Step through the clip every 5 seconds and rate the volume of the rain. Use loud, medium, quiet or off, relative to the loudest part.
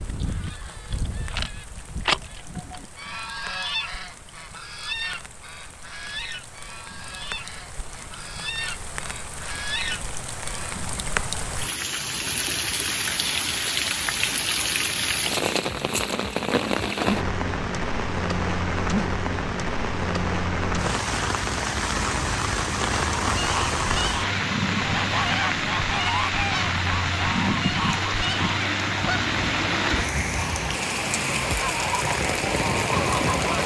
quiet, quiet, loud, loud, loud, loud, loud.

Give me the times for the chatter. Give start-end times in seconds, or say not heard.
not heard.